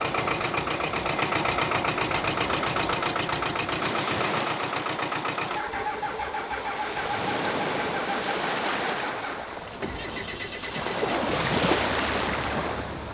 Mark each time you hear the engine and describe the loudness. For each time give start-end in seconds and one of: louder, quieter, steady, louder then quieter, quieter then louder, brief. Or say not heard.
0.0-13.0 quieter.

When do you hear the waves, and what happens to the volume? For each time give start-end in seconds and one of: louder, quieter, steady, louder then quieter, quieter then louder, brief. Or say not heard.
0.0-13.0 louder.